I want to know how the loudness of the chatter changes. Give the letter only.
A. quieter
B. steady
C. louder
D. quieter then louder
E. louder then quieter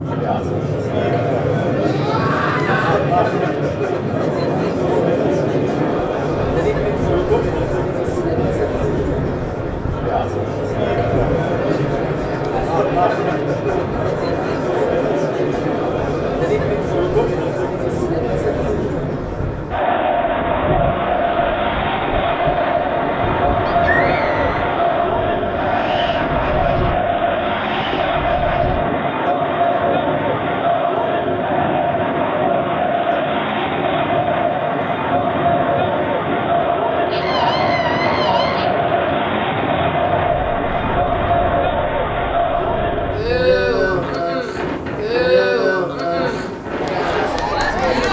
B.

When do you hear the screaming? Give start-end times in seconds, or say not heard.
1.8-3.0, 23.6-24.6, 37.1-38.7.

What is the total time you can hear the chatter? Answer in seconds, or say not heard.
48 s.